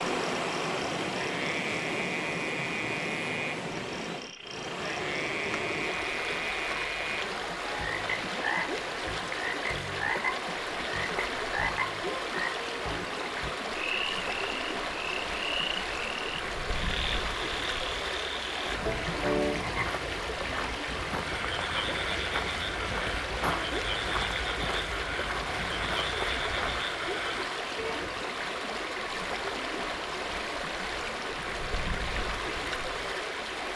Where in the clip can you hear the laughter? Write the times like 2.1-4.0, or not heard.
not heard.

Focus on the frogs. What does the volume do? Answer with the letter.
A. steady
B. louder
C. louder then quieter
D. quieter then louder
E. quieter
A.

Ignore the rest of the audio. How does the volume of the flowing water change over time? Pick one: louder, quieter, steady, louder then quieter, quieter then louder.
steady.